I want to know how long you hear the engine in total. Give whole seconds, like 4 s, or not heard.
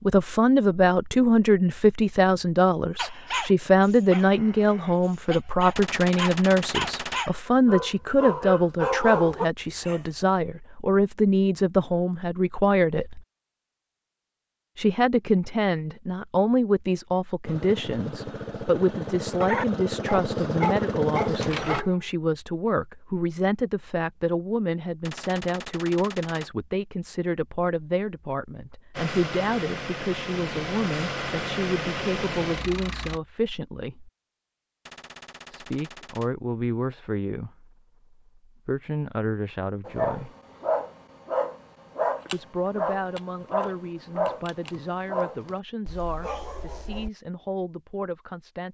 9 s.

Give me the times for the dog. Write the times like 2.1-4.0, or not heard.
3.0-10.0, 19.4-21.9, 39.9-47.1.